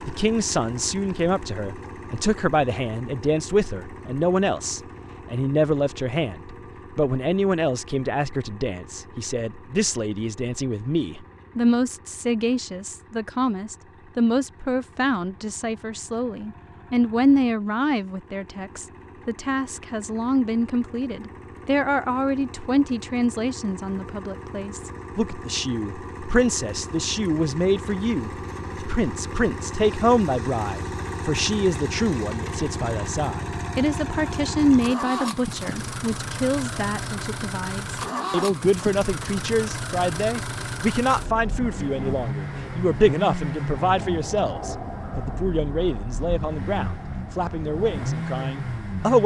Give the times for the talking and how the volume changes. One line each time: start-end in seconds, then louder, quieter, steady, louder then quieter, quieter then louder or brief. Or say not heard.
0.1-49.2 steady.